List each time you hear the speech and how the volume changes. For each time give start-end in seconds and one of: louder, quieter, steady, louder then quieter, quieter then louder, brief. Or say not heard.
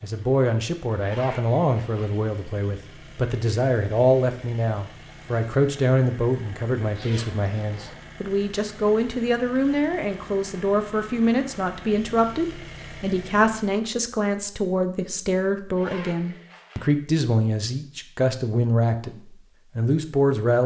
0.0-20.6 steady.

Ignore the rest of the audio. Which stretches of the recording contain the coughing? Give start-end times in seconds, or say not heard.
not heard.